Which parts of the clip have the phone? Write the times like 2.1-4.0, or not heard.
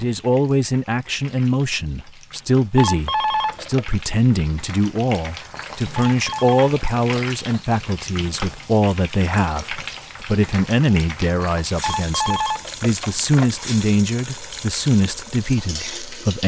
2.8-3.9, 6.0-7.6, 11.8-13.5.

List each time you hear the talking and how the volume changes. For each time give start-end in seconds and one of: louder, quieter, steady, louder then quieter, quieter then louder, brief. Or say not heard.
0.0-16.4 steady.